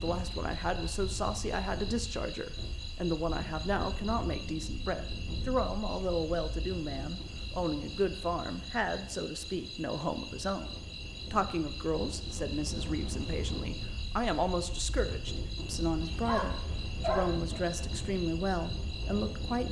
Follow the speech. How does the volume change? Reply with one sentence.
The volume of the speech stays about the same.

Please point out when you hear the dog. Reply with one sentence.
You can hear the dog from 16.1 to 17.6 s.